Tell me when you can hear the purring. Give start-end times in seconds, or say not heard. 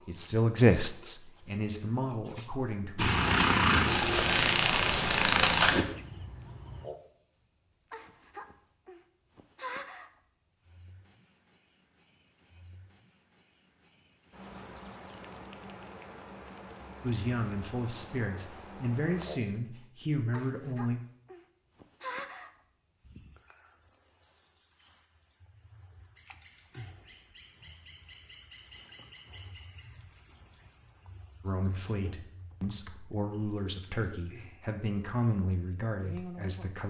3.0-5.8.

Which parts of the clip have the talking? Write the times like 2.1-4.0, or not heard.
0.1-3.1, 17.0-21.0, 31.4-36.8.